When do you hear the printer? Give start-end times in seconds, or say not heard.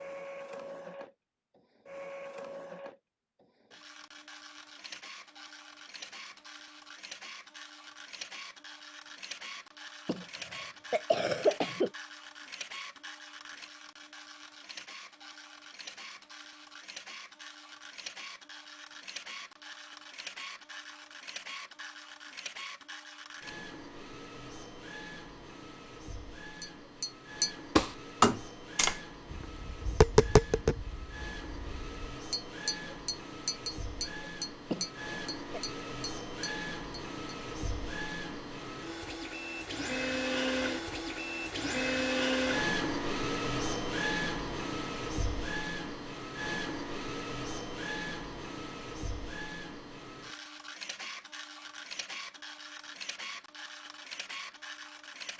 0.0-55.3.